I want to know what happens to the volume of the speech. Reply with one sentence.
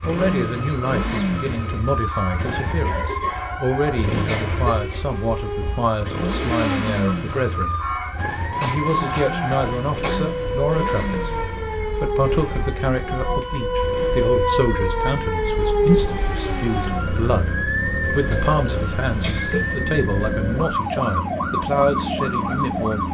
The volume of the speech stays about the same.